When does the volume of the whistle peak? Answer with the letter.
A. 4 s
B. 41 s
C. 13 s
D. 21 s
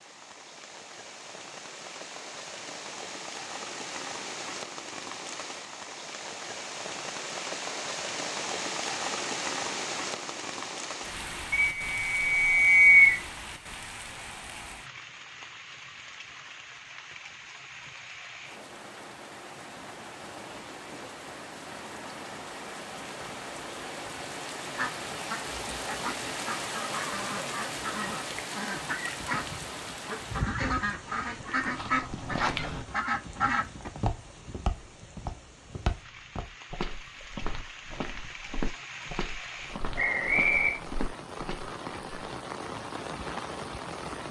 C.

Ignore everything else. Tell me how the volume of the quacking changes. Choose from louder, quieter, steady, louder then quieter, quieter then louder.
louder.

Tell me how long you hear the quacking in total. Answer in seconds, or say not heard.
9 s.